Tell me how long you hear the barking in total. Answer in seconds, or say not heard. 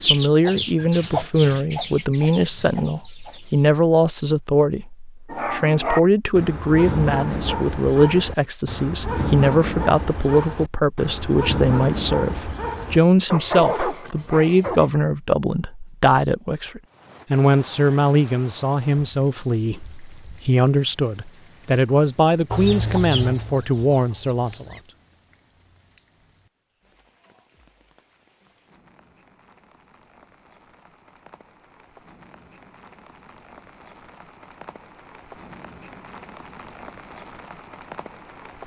10 s.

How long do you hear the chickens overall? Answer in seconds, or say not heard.
6 s.